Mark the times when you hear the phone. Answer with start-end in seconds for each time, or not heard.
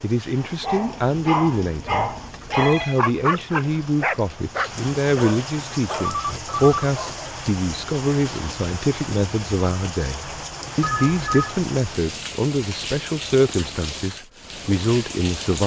2.4-3.0, 6.0-6.9, 10.8-11.6.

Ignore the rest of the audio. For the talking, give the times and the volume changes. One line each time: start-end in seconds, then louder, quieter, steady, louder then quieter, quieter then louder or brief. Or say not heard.
0.0-15.6 steady.